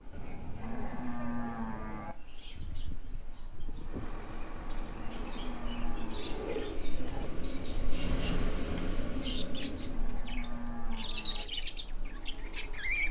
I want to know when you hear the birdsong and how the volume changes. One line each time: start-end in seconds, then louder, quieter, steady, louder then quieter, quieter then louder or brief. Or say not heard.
2.1-13.0 louder.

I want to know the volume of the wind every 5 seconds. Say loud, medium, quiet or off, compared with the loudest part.
quiet, loud, quiet.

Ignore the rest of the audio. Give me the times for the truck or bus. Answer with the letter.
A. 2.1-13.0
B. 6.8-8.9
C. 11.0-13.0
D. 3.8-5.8
D.